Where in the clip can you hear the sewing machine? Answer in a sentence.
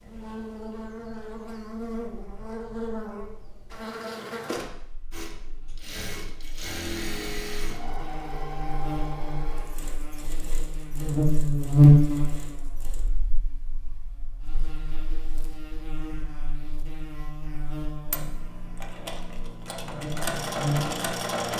The sewing machine can be heard from 5.1 to 13.1 s and from 18.0 to 21.5 s.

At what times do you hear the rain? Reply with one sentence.
You can't hear the rain here.